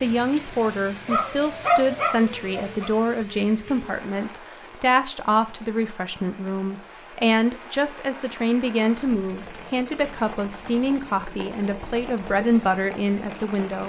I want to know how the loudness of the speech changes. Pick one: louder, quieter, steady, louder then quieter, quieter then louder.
steady.